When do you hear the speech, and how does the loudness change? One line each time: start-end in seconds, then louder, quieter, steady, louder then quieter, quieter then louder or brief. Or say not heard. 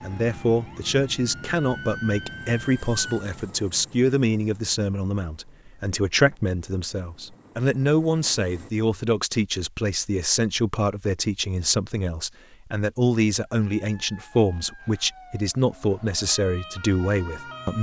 0.0-17.7 steady.